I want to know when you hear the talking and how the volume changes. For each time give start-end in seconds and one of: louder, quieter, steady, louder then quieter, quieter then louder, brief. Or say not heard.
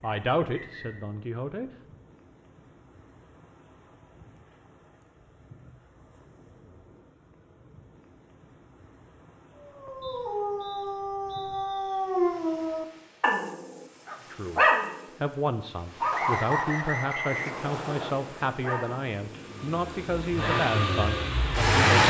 0.0-1.7 brief
14.3-22.0 steady.